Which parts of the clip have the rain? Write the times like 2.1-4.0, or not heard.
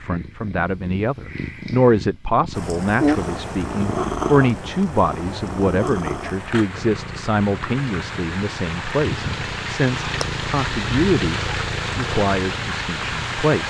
2.5-13.6.